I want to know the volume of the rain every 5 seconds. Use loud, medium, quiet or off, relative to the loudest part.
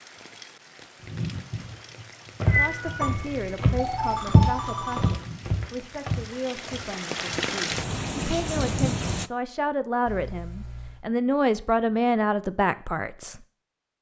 quiet, loud, off.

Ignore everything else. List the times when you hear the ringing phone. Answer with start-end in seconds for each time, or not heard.
3.0-5.2.